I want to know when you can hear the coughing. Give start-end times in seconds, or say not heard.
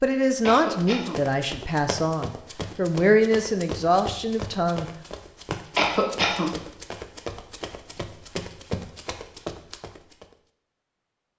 0.4-1.2, 5.8-6.5.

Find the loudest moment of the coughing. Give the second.
6 s.